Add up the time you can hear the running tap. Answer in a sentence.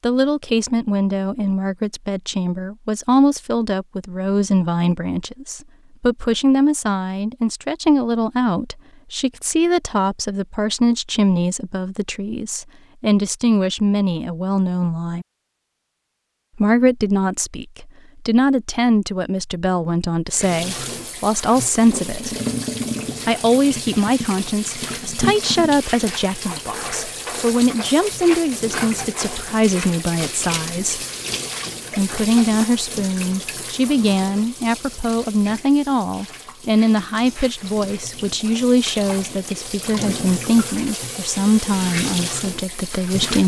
The running tap can be heard for 23 seconds in total.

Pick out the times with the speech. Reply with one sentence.
You can hear the speech from 0.0 to 15.2 s, from 16.6 to 22.4 s, from 23.2 to 31.1 s and from 31.9 to 43.4 s.